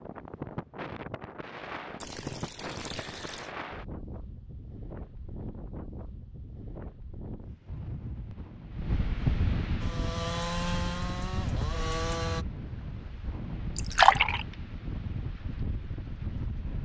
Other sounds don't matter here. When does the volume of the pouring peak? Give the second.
14 s.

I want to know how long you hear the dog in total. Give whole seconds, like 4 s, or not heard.
not heard.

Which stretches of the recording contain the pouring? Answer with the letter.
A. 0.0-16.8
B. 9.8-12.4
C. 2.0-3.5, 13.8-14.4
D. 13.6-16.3
C.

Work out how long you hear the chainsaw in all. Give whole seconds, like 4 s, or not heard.
3 s.